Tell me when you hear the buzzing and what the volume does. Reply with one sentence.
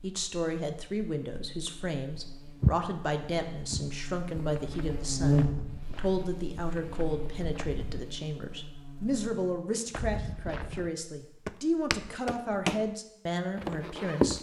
You can hear the buzzing from 0.0 to 9.6 s, getting louder then quieter.